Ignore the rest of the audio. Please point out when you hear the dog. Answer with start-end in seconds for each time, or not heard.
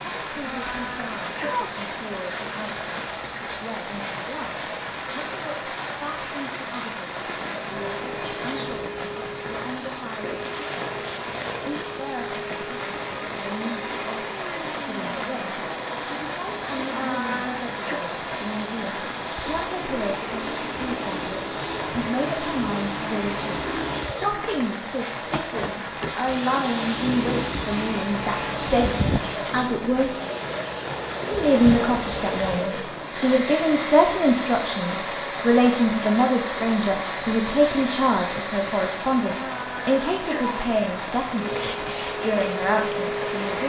not heard.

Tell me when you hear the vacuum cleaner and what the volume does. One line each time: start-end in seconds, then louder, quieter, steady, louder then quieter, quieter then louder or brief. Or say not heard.
0.0-39.1 louder
41.4-43.6 brief.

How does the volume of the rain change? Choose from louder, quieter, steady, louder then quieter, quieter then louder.
steady.